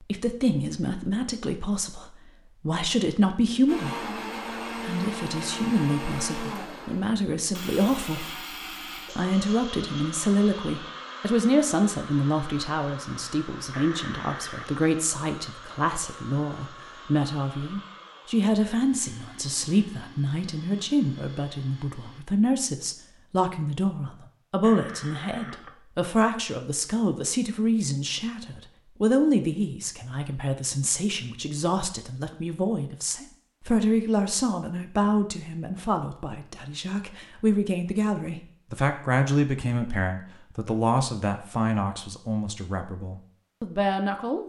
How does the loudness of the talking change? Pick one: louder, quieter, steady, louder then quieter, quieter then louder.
steady.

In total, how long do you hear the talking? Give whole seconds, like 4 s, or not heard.
43 s.